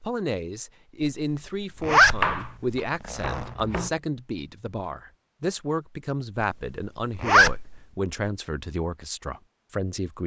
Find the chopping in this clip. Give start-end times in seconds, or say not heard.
1.9-3.9.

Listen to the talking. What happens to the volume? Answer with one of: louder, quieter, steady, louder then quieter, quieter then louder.
steady.